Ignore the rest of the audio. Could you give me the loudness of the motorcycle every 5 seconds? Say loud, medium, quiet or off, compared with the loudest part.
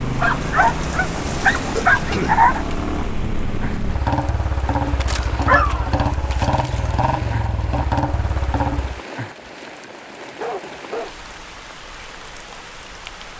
loud, loud, off.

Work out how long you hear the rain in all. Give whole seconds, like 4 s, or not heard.
13 s.